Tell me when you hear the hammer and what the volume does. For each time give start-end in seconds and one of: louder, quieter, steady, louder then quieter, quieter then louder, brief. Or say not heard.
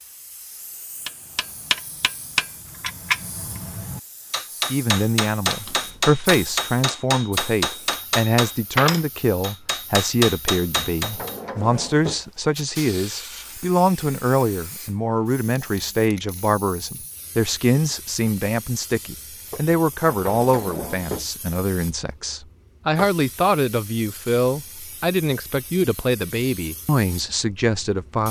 1.1-11.3 steady.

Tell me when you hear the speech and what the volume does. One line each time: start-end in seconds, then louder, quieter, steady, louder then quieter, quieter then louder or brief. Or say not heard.
4.7-28.2 steady.